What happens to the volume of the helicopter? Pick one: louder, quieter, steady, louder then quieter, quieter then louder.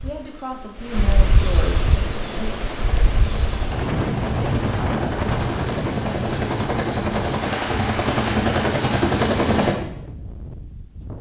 louder.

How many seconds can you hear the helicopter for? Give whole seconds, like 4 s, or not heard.
8 s.